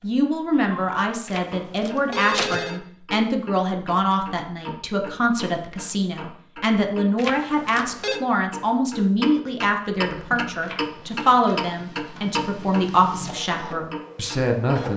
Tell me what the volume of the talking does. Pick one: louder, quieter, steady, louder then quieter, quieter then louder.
steady.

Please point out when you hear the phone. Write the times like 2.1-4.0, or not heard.
1.2-2.8, 7.2-8.2, 10.6-11.6.